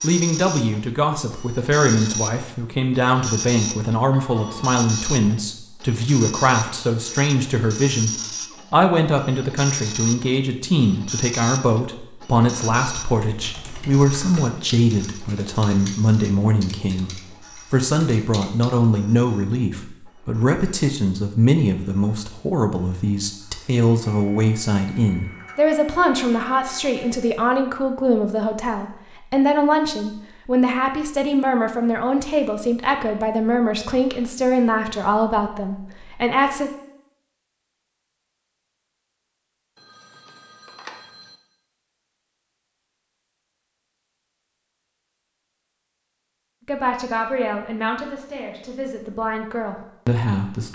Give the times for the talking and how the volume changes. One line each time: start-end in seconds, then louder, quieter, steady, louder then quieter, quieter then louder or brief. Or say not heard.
0.0-36.7 steady
46.6-50.7 quieter then louder.